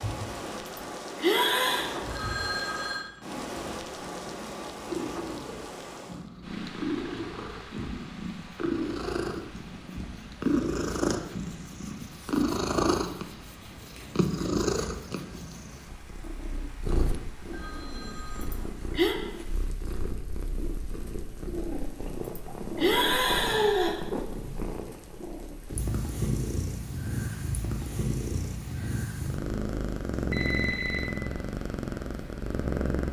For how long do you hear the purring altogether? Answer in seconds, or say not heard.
33 s.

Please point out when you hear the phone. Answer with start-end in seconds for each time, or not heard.
2.1-3.0, 17.4-18.6, 30.3-31.1.